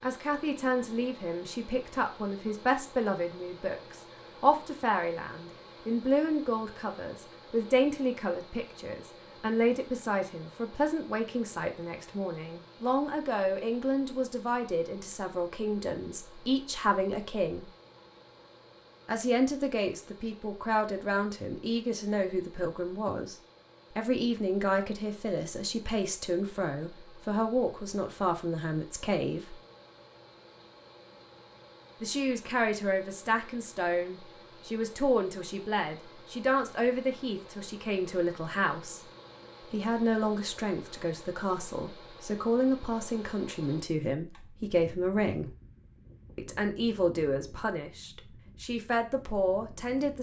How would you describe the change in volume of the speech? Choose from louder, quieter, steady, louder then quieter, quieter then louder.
steady.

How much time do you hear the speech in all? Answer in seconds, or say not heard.
44 s.